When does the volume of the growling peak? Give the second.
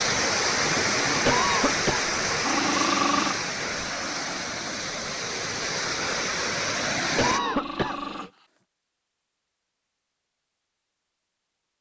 3 s.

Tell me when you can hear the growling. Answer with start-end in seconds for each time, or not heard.
2.2-3.4, 7.3-8.4.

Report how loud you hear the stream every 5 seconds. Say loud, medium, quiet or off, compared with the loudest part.
loud, loud, off.